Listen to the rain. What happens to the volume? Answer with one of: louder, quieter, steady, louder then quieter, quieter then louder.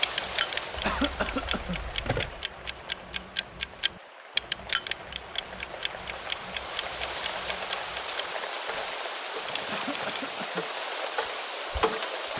quieter then louder.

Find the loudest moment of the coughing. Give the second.
1 s.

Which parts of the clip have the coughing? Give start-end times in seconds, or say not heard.
0.8-1.8, 9.7-10.7.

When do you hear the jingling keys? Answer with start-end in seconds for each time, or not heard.
0.8-2.5, 9.4-10.4.